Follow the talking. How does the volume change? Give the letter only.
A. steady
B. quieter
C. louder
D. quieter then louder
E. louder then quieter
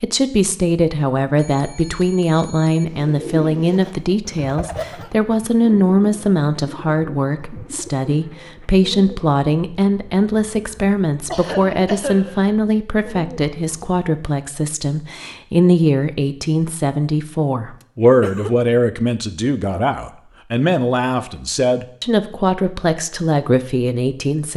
A.